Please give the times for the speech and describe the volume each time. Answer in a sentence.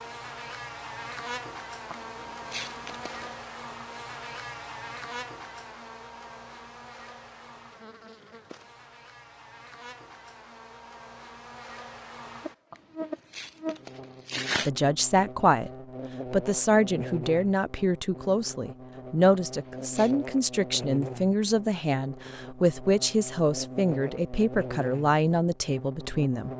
The speech can be heard briefly from 14.7 to 15.7 s; and from 16.3 to 26.5 s, at a steady volume.